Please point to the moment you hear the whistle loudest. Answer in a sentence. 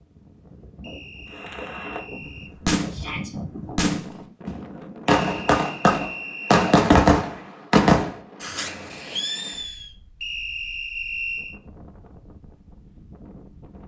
The loudest moment of the whistle is at 11 seconds.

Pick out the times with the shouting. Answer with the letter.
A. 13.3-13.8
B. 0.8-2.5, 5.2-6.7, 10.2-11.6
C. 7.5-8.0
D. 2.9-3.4
D.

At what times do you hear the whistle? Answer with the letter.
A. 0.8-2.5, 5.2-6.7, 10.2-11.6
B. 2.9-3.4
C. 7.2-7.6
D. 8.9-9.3
A.